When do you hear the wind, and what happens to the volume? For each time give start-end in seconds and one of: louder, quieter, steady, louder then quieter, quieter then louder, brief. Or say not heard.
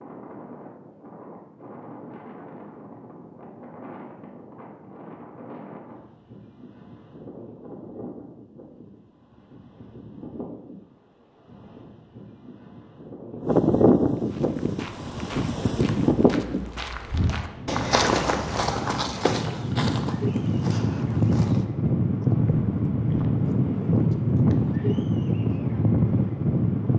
0.0-26.9 louder.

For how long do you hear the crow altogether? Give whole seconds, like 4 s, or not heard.
not heard.